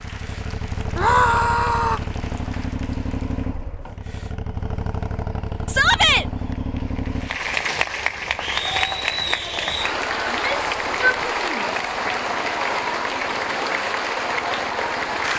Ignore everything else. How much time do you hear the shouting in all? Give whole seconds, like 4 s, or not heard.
3 s.